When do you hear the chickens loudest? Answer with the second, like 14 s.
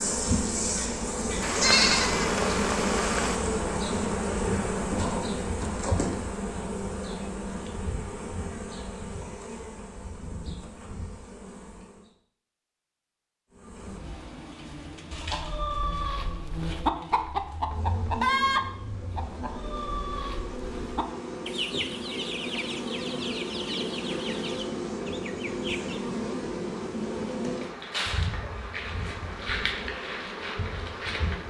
18 s.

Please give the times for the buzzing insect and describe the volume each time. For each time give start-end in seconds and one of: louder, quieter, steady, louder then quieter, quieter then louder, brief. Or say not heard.
0.0-12.1 quieter
13.5-31.4 louder.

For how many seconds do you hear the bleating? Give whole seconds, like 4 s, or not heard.
2 s.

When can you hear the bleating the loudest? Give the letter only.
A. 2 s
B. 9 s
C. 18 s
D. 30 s
A.